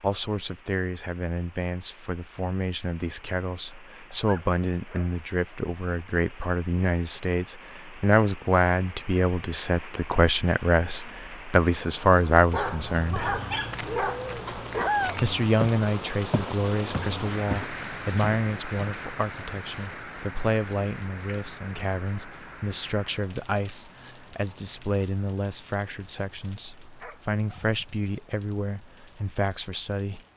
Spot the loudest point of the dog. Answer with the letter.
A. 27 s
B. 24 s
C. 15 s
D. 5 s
C.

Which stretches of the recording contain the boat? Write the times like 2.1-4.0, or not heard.
not heard.